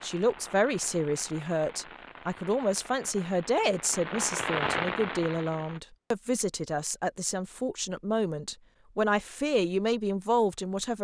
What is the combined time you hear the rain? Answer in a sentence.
You can hear the rain for 6 seconds altogether.